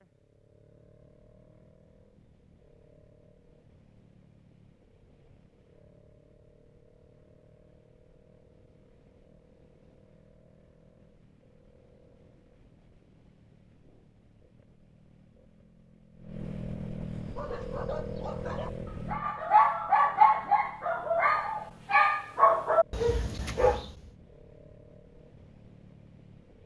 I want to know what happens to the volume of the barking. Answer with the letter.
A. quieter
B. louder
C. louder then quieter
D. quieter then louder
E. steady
B.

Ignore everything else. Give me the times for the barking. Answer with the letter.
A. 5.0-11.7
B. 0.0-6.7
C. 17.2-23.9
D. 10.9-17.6
C.